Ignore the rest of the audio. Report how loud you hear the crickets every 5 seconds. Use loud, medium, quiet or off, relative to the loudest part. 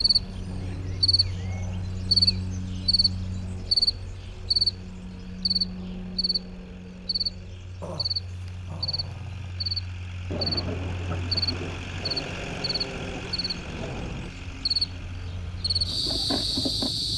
loud, medium, medium, loud.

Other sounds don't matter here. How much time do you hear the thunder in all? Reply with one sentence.
You can hear the thunder for 4 seconds altogether.